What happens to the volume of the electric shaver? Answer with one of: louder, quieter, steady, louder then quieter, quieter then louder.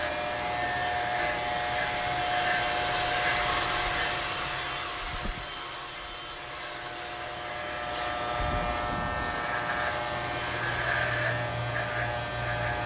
quieter then louder.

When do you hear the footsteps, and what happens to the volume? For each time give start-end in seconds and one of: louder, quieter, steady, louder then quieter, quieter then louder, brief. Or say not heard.
not heard.